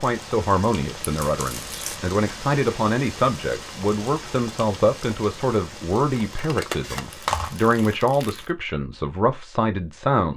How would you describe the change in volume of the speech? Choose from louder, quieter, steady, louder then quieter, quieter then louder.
steady.